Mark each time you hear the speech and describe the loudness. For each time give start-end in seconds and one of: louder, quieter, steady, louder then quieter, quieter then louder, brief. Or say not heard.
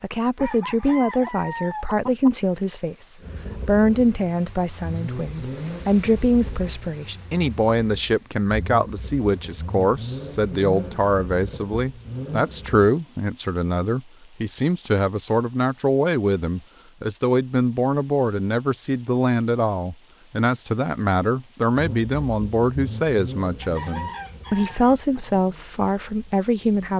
0.0-26.9 steady.